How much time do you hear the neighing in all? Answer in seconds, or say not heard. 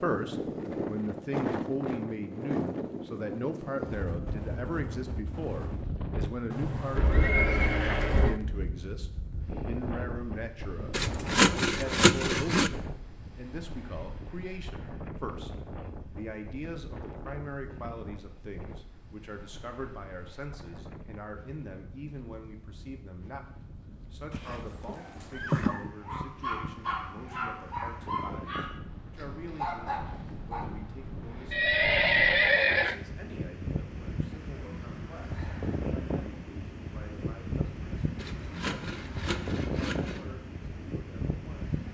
5 s.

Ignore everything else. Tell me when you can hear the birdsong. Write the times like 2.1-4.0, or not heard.
not heard.